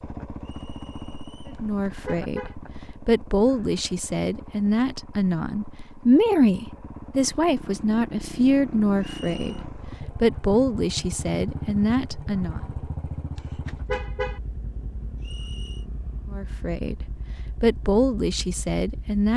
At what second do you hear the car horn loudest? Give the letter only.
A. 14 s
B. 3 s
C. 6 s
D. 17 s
A.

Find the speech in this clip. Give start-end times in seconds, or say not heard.
1.4-12.6, 16.3-19.3.